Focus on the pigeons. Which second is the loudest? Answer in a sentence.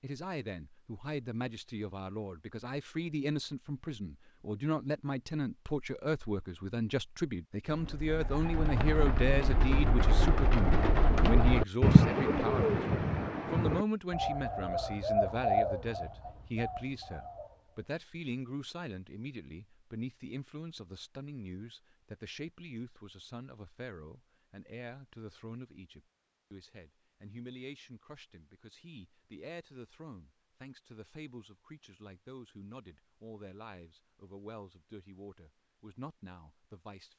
The loudest moment of the pigeons is at 12 seconds.